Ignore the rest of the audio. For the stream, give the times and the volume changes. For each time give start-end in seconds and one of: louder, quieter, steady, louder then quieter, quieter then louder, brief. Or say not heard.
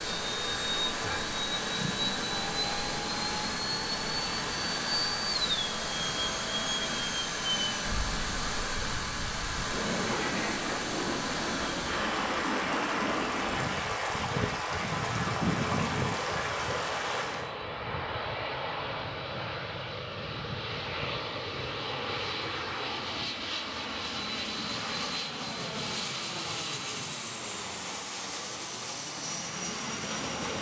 0.0-17.5 steady.